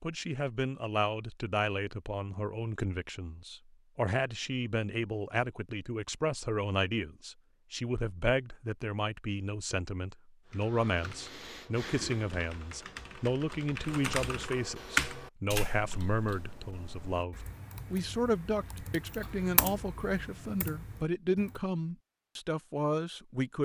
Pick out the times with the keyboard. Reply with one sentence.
You can hear the keyboard from 10.4 to 21.6 s.